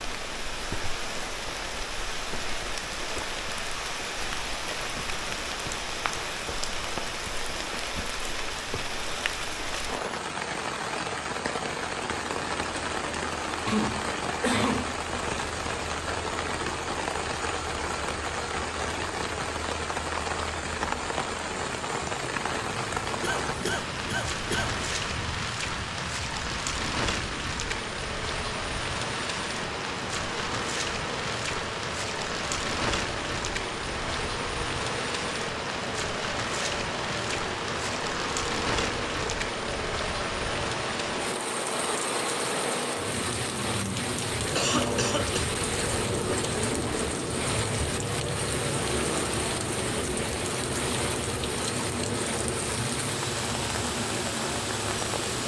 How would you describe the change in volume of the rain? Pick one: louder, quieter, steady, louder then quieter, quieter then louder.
steady.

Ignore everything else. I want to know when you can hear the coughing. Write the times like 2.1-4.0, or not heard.
13.7-14.9, 23.2-24.7, 44.5-45.5.